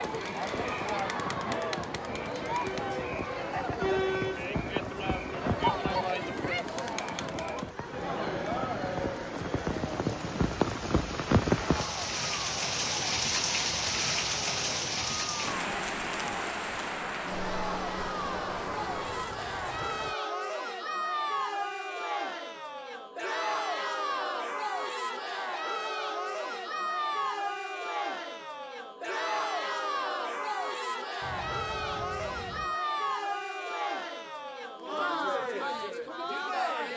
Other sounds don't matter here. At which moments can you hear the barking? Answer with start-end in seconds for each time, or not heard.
not heard.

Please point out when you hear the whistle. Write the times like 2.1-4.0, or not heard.
not heard.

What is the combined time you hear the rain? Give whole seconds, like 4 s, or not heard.
20 s.